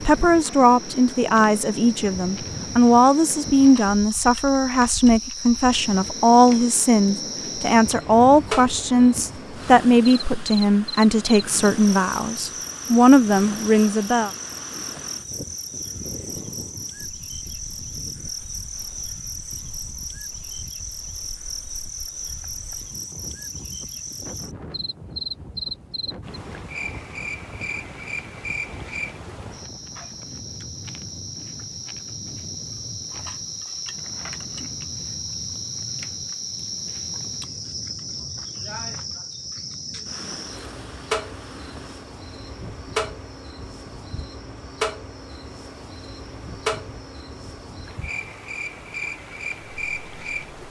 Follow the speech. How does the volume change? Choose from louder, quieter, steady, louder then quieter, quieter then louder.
steady.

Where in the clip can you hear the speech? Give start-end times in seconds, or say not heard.
0.0-14.3.